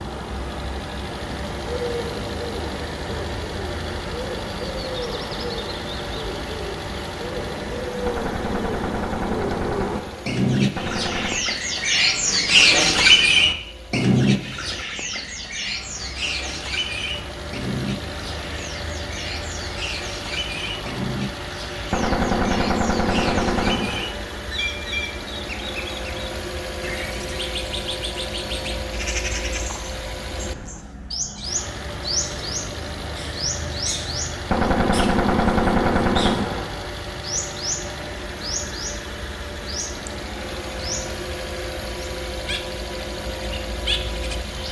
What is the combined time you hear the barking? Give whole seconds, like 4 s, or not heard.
not heard.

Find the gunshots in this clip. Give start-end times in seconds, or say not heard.
8.1-11.4, 21.9-24.4, 34.5-36.9.